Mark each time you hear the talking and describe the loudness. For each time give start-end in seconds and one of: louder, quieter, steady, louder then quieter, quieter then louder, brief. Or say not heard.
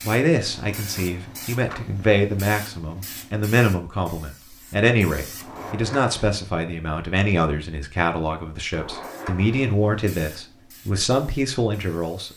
0.0-12.3 steady.